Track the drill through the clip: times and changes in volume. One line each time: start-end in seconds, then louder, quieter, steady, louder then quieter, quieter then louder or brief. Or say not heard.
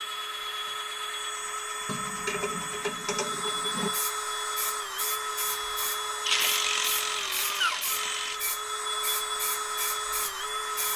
0.0-10.9 steady.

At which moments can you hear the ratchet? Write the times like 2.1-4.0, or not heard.
1.9-3.9, 6.2-8.4.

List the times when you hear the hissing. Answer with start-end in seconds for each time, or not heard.
3.9-10.9.